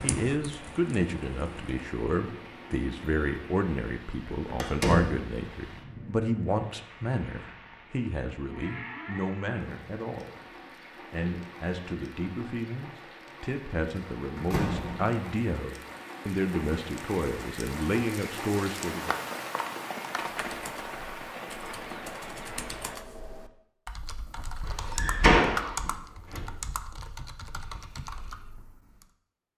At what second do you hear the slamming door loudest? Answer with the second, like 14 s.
25 s.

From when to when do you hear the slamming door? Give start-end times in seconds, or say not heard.
4.5-5.2, 13.9-15.2, 24.9-26.4.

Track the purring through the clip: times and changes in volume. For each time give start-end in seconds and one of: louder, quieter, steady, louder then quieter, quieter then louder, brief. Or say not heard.
not heard.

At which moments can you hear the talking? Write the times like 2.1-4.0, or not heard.
0.0-10.4, 11.1-19.1.